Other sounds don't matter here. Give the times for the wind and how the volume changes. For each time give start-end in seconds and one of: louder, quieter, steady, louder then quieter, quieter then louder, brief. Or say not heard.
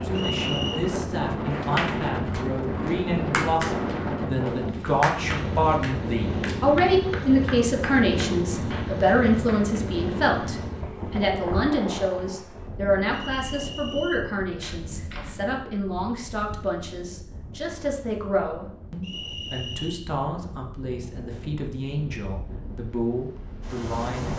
0.0-24.3 quieter.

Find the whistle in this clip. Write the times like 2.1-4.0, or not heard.
0.1-0.8, 13.1-14.2, 19.0-19.9.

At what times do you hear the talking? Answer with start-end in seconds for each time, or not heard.
0.0-24.3.